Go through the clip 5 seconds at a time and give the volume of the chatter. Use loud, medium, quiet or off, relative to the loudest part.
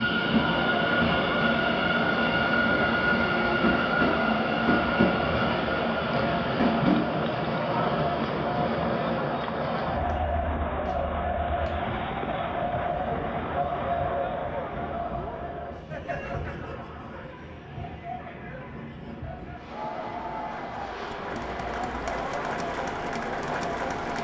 loud, loud, loud, medium, loud.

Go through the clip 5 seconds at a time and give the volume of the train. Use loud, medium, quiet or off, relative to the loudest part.
loud, loud, quiet, quiet, quiet.